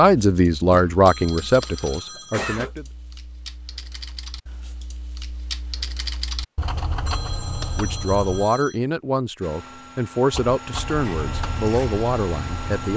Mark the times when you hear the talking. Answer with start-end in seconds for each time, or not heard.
0.0-2.9, 7.8-12.9.